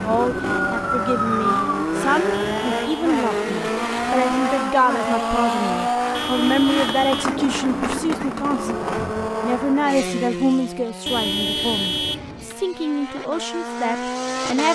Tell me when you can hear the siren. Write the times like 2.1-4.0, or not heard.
0.1-1.9.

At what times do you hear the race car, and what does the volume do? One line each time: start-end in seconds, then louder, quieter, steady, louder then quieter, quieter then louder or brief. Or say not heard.
0.0-14.7 quieter.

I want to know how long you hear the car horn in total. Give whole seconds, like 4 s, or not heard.
4 s.